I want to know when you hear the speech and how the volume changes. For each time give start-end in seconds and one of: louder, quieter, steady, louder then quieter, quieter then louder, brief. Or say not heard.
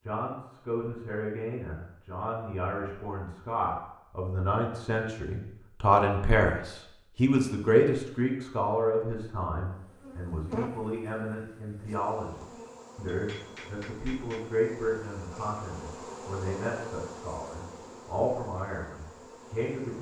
0.0-19.9 louder then quieter.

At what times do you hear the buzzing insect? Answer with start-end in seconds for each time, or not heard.
9.7-19.9.